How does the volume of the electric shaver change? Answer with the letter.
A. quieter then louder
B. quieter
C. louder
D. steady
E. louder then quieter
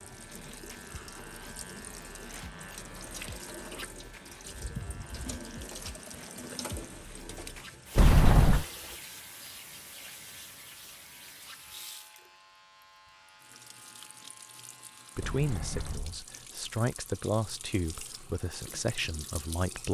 B.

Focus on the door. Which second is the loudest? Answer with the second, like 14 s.
8 s.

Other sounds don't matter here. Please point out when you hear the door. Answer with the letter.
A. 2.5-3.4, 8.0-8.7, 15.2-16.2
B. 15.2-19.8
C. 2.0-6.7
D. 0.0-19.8
A.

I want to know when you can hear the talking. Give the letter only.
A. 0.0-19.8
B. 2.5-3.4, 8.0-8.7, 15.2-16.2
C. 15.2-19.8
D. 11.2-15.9
C.